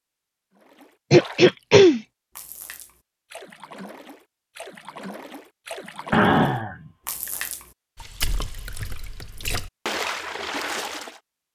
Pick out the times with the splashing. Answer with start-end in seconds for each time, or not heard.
0.6-11.2.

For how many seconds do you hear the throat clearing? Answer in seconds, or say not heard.
2 s.